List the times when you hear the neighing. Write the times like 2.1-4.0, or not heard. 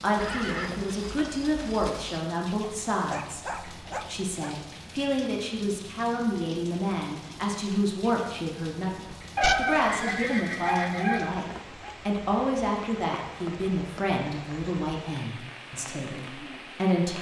0.1-2.1, 9.8-11.3.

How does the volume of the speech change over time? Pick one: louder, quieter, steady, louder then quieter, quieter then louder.
steady.